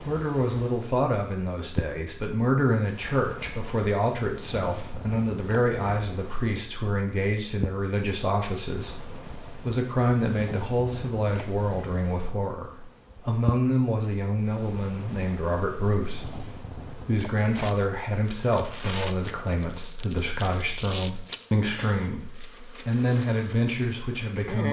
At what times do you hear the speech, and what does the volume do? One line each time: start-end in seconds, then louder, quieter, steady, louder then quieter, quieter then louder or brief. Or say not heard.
0.0-24.6 steady.